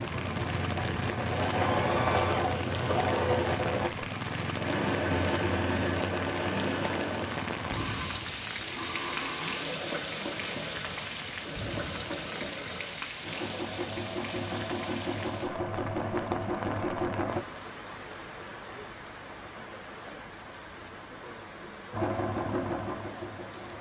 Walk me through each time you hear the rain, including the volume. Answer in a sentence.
The rain can be heard from 0.0 to 23.7 s, getting quieter.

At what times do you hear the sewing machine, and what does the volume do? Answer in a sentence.
The sewing machine can be heard from 0.0 to 17.4 s, getting quieter then louder; and briefly from 21.9 to 23.7 s.